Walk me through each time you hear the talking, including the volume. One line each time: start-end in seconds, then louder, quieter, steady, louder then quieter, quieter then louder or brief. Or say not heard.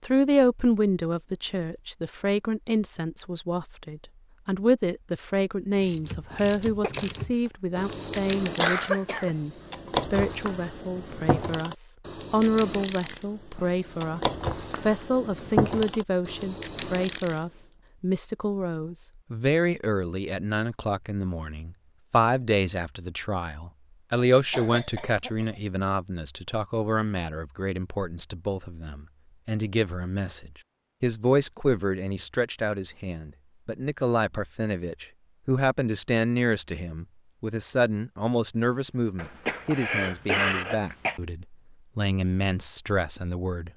0.0-43.7 steady.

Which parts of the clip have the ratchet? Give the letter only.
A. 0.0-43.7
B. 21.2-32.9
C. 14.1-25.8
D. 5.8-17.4
D.